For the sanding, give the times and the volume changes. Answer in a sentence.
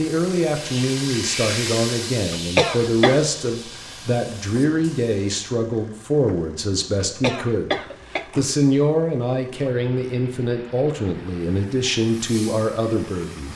You can't hear the sanding here.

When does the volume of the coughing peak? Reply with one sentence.
The volume of the coughing peaks at 3 seconds.